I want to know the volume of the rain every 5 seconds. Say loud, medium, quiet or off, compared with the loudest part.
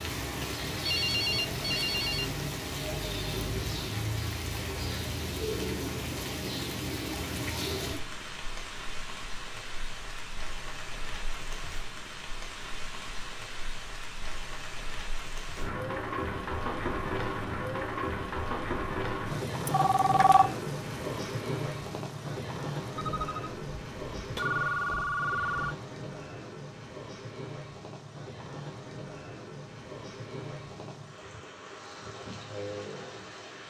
loud, loud, medium, loud, loud, medium, medium.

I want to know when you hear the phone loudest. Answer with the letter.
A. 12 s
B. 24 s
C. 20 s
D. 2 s
C.